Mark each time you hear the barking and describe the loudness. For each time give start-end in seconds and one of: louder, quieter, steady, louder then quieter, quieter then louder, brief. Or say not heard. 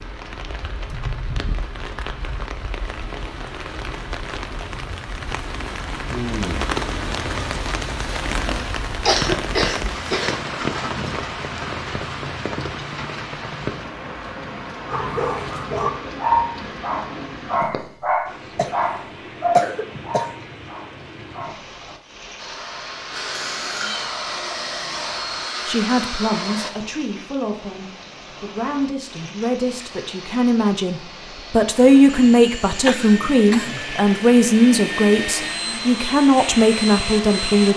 14.9-21.9 quieter.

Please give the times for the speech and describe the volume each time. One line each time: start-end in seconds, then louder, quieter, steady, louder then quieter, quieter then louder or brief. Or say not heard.
25.6-37.7 louder.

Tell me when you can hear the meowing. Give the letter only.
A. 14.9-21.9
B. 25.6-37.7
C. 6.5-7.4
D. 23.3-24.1
D.